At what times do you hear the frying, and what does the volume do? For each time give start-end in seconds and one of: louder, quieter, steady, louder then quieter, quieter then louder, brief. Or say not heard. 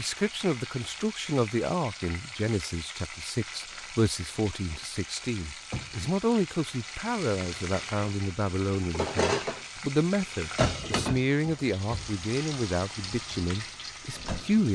0.0-14.7 louder then quieter.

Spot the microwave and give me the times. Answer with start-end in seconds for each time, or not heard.
not heard.